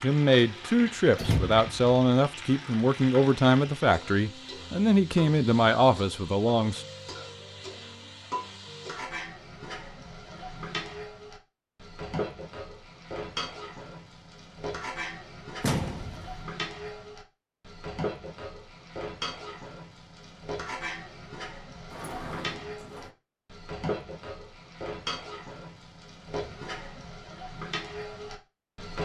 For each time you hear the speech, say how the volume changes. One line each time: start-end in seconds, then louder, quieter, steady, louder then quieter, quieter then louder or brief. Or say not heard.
0.0-6.8 steady.